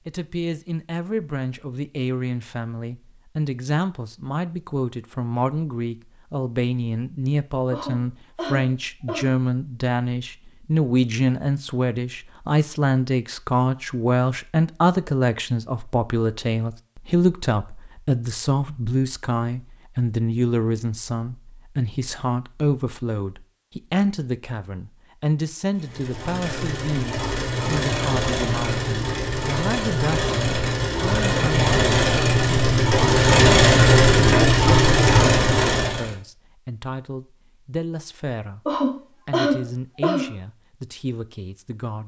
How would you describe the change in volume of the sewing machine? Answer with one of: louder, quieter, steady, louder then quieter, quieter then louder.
louder.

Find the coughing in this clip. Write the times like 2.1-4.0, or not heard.
7.7-9.3, 38.6-40.2.